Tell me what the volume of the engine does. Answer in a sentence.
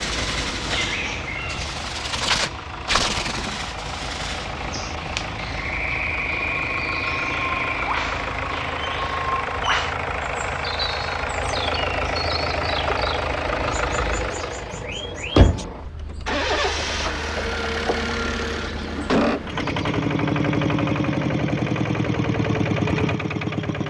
The loudness of the engine goes up.